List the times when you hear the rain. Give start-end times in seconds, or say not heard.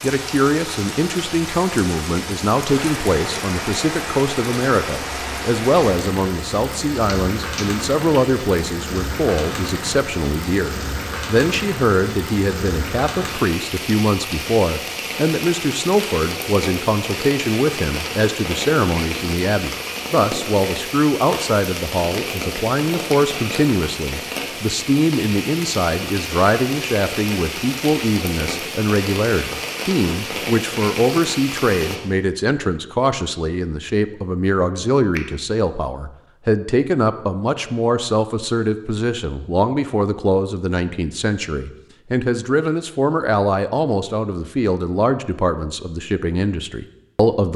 0.0-32.0.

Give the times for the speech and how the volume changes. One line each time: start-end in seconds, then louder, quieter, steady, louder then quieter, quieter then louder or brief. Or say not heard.
0.0-47.5 steady.